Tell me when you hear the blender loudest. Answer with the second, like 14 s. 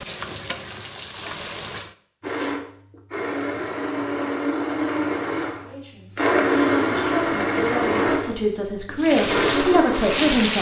7 s.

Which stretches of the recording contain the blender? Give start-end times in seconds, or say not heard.
2.2-10.3.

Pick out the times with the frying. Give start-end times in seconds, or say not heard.
0.0-1.9, 8.9-10.5.